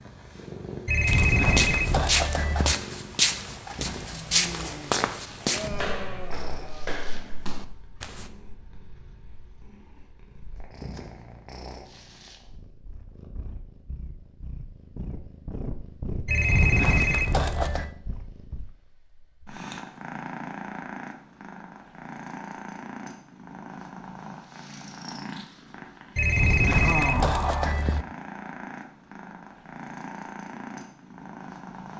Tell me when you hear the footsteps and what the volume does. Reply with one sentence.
The footsteps can be heard from 1.1 to 8.3 s, getting quieter.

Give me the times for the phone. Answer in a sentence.
You can hear the phone from 0.8 to 2.8 s, from 16.2 to 17.9 s and from 26.1 to 28.1 s.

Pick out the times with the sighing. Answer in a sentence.
The sighing can be heard from 4.1 to 6.9 s and from 26.8 to 27.8 s.